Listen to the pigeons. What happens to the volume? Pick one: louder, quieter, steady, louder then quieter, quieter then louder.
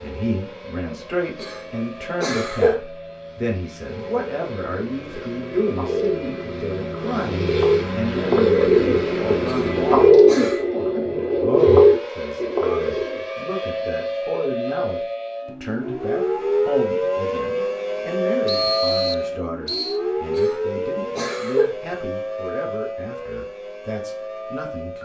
louder.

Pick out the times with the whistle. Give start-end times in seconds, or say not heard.
18.4-20.0.